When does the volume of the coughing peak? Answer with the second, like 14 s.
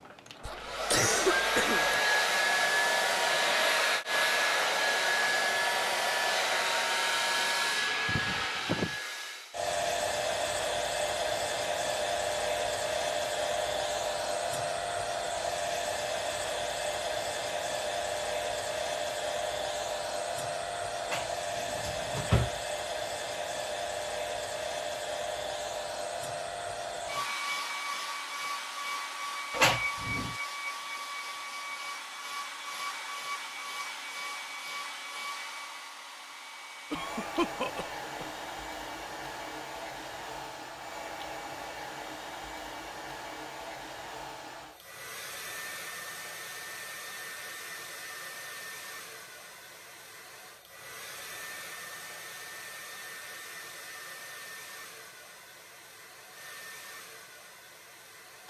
1 s.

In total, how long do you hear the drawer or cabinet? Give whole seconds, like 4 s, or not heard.
2 s.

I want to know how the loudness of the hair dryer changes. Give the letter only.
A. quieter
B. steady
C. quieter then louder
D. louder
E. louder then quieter
A.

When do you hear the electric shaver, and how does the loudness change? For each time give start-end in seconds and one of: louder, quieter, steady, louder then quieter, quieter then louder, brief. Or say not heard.
not heard.